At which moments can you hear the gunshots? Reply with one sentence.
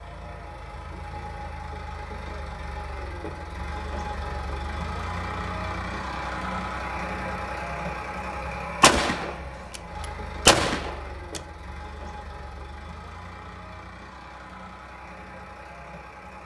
The gunshots can be heard from 8.8 to 11.4 s.